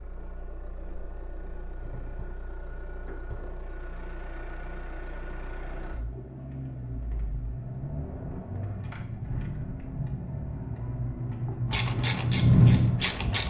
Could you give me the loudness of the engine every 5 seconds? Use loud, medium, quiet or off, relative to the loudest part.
quiet, quiet, loud.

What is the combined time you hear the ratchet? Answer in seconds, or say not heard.
2 s.